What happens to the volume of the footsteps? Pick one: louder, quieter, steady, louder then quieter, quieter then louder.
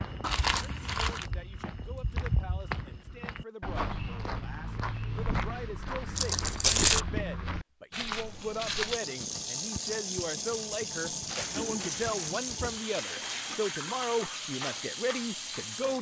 louder.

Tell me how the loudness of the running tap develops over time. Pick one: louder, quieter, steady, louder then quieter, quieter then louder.
steady.